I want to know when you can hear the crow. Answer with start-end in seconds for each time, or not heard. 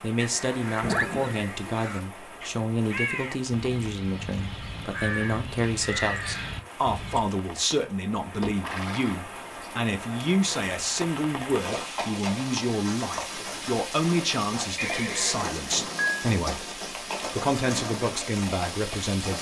0.1-7.2.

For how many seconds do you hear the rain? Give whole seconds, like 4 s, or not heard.
19 s.